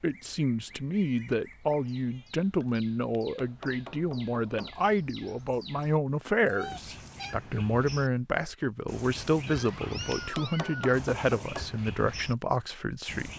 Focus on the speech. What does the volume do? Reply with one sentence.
The volume of the speech stays about the same.